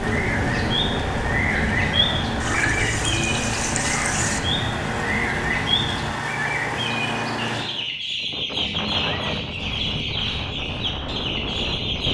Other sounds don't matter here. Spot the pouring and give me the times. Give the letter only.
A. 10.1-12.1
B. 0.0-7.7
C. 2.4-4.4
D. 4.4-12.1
C.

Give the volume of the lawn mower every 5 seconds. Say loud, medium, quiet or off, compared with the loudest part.
loud, loud, off.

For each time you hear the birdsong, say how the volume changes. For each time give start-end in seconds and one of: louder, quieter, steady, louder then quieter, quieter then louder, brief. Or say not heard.
0.1-12.1 steady.